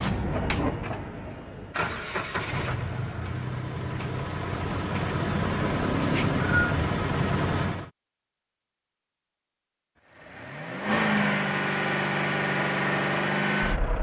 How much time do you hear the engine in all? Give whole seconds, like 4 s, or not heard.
12 s.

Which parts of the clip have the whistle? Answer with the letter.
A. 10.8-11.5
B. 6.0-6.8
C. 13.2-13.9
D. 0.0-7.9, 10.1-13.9
B.